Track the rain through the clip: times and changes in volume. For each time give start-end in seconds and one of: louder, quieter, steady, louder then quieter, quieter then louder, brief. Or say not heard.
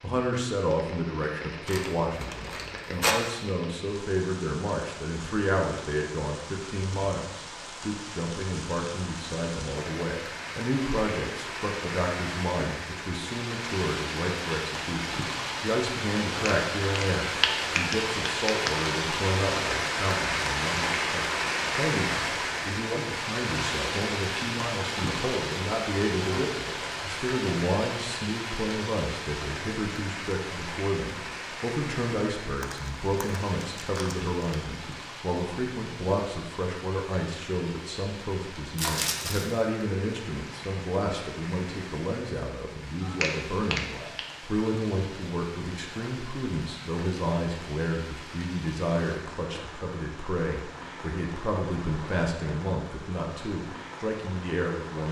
0.0-55.0 louder then quieter.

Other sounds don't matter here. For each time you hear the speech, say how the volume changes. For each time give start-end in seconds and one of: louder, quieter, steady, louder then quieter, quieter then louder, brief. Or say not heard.
0.0-55.0 steady.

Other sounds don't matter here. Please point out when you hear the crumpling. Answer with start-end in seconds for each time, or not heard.
1.6-3.1, 32.6-34.6, 38.8-39.6.